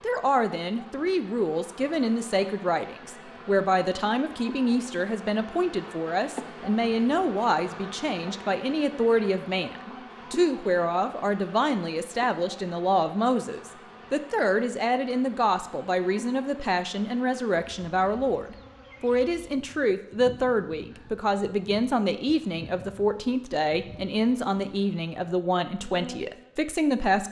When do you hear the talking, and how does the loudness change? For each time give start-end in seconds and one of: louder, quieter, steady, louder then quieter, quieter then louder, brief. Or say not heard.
0.0-27.2 steady.